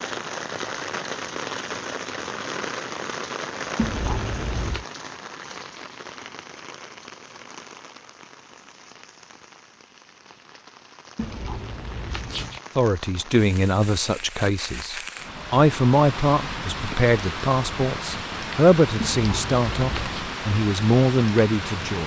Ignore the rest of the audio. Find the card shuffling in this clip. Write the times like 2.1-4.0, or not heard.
3.8-4.8, 11.2-12.6, 19.0-20.2.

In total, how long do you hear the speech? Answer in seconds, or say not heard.
9 s.